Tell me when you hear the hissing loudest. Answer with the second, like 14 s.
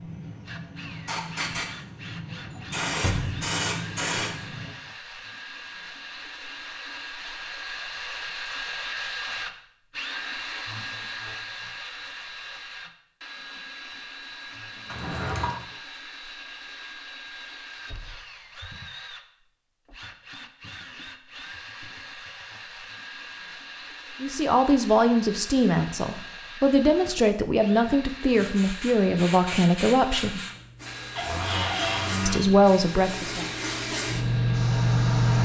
35 s.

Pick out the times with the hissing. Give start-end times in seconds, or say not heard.
0.0-4.8, 28.3-35.4.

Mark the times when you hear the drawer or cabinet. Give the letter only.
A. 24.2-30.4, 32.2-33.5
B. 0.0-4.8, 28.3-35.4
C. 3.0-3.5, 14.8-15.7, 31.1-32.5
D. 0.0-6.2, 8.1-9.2
C.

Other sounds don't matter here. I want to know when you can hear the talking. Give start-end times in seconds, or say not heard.
24.2-30.4, 32.2-33.5.